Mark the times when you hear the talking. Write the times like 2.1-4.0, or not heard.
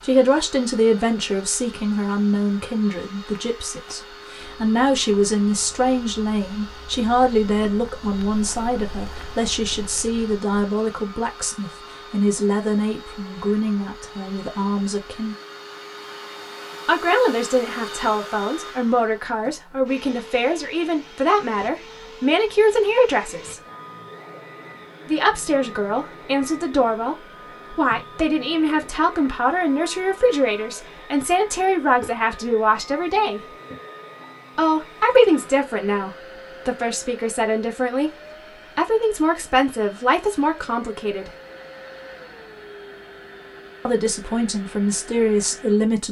0.0-15.3, 16.9-23.6, 25.1-33.5, 34.5-41.3, 43.9-46.0.